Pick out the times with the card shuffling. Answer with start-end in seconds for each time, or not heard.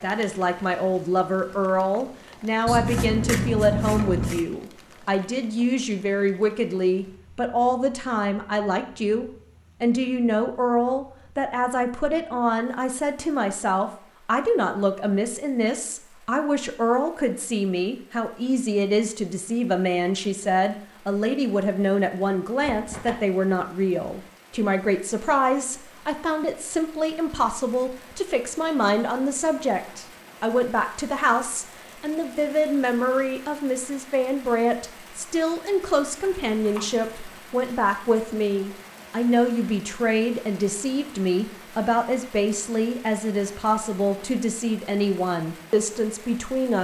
2.6-4.5, 22.6-23.2, 36.2-37.4.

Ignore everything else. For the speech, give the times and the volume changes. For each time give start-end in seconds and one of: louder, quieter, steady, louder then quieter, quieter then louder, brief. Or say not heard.
0.0-46.7 steady.